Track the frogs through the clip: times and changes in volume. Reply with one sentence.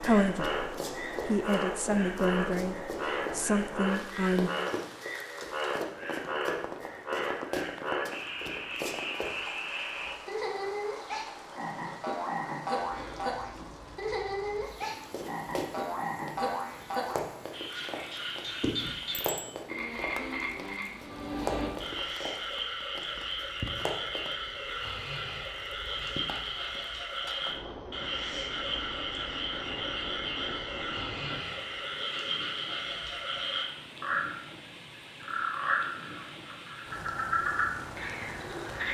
The frogs can be heard from 0.0 to 38.8 s, at a steady volume.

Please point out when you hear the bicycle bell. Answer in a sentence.
The bicycle bell can be heard from 19.1 to 19.6 s.